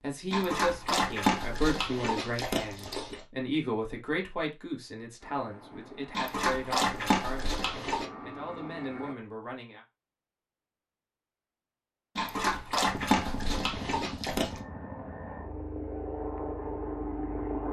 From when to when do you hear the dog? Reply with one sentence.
The dog can be heard from 0.3 to 3.2 s, from 6.1 to 8.1 s and from 12.2 to 14.6 s.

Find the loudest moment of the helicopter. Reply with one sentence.
The loudest moment of the helicopter is at 17 seconds.